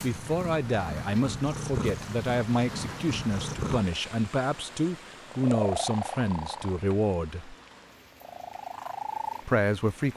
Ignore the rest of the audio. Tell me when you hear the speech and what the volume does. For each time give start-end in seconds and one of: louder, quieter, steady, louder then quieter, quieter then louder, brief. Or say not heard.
0.0-7.5 steady
9.4-10.1 brief.